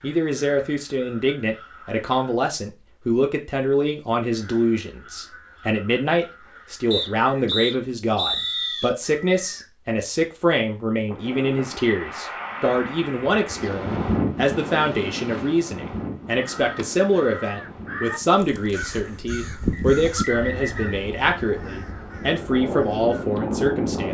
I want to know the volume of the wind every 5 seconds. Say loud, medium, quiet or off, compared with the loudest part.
off, off, loud, medium, loud.